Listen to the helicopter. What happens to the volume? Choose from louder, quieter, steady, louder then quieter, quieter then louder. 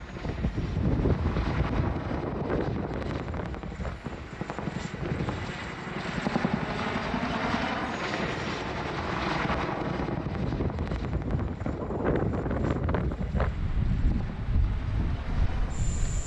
louder then quieter.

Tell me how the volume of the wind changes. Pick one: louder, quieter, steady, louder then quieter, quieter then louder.
quieter then louder.